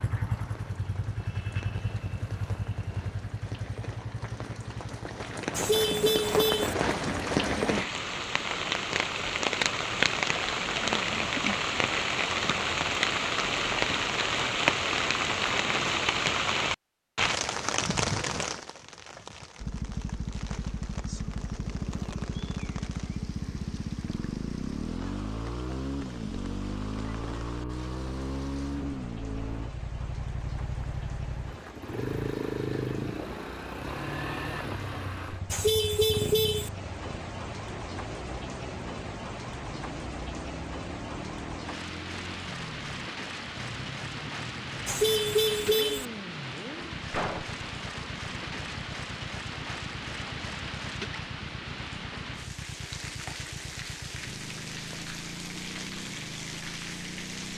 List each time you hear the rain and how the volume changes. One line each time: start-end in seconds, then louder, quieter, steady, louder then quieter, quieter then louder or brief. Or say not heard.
0.0-57.5 quieter then louder.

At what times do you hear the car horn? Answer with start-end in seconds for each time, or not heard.
5.5-6.8, 35.5-36.7, 44.9-46.0.